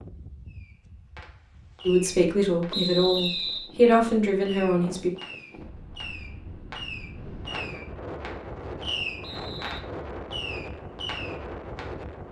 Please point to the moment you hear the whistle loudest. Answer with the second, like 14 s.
3 s.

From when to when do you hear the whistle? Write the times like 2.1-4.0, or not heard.
2.7-3.7, 9.2-9.8.